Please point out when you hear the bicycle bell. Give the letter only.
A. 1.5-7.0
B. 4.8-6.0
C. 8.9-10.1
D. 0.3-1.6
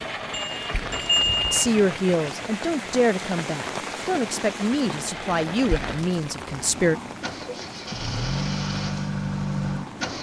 D.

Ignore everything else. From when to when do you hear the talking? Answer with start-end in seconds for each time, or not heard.
1.5-7.0.